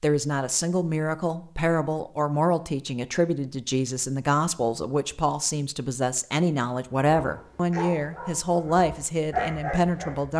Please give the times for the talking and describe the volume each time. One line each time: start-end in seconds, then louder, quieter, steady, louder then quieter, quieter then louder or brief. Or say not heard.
0.0-10.3 steady.